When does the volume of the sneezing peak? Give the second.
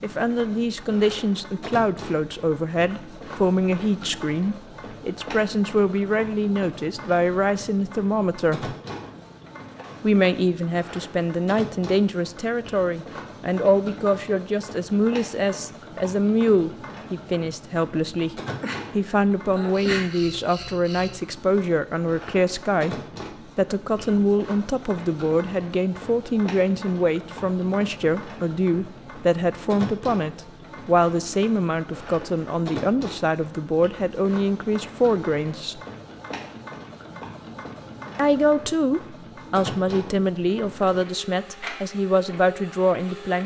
20 s.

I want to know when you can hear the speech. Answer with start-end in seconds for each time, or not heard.
0.0-8.8, 10.0-35.8, 38.1-43.4.